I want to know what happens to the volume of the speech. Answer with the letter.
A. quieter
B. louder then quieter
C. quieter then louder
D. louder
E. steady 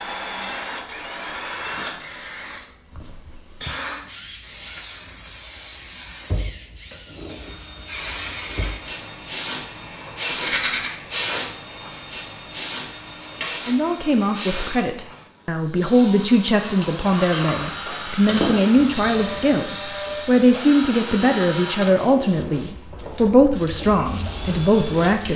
E.